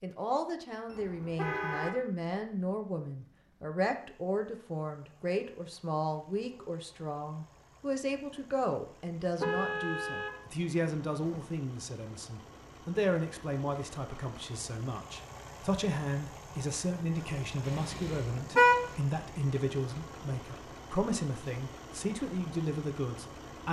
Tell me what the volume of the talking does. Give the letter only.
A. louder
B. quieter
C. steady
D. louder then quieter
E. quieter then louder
C.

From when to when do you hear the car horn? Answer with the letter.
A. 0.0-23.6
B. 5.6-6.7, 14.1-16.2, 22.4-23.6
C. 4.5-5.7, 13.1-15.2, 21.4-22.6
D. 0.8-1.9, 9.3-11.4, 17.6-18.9
D.